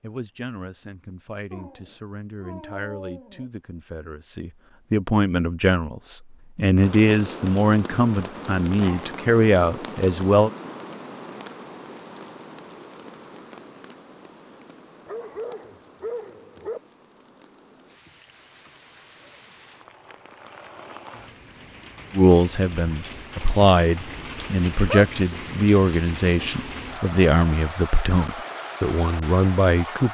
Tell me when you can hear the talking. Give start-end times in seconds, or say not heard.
0.0-10.5, 22.1-30.0.